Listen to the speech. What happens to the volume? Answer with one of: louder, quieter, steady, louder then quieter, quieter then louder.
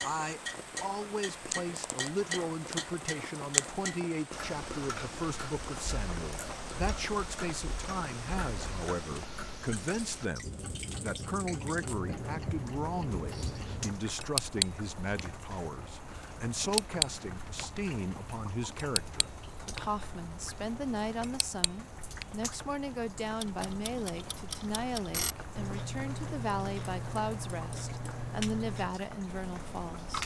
steady.